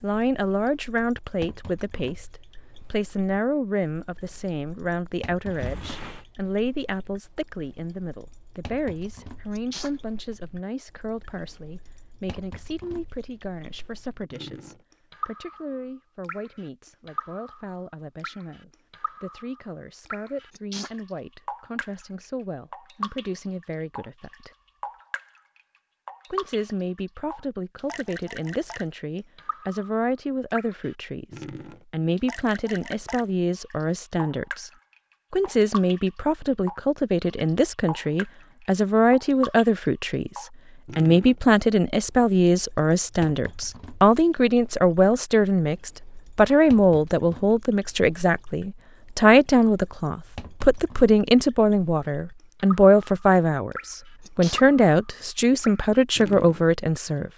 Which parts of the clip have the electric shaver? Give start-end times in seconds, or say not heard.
not heard.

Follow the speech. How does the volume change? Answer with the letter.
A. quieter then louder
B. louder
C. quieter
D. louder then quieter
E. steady
A.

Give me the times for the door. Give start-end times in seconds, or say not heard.
5.5-6.2.